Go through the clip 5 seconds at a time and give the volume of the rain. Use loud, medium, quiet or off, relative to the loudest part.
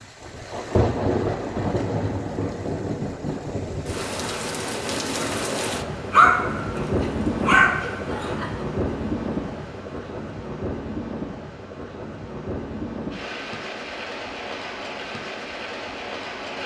loud, loud, medium, medium.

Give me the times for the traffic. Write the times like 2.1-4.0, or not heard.
not heard.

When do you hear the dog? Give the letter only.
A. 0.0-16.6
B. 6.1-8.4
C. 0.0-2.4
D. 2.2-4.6
B.